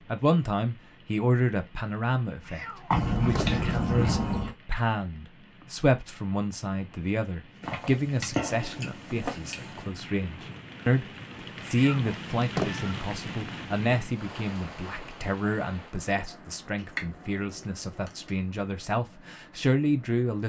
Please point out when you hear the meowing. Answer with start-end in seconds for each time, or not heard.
2.5-3.6, 11.7-13.1.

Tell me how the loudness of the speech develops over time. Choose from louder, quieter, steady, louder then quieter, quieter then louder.
steady.